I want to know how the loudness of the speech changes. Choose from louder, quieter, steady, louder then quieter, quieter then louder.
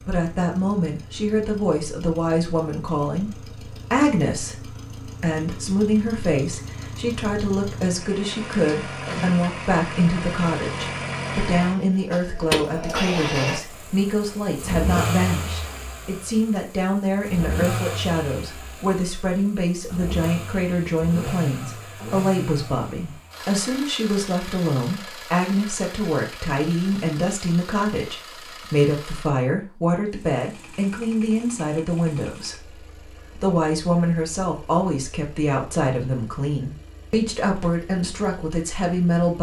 steady.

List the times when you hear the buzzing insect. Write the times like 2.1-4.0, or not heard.
not heard.